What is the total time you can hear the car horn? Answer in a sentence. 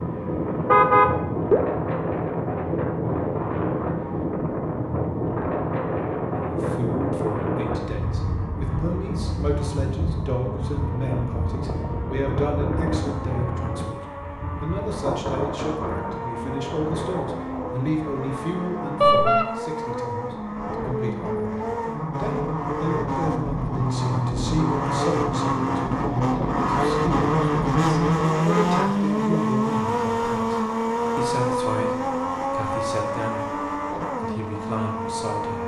The car horn can be heard for 2 seconds in total.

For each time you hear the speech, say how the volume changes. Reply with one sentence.
The speech can be heard from 6.4 to 35.6 s, at a steady volume.